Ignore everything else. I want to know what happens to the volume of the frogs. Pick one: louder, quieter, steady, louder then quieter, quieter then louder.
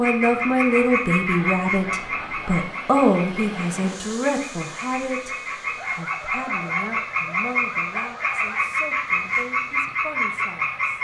quieter then louder.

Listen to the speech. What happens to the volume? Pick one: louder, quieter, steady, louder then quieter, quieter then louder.
quieter.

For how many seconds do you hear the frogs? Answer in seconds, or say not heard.
11 s.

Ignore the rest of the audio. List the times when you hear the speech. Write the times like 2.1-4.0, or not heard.
0.0-10.9.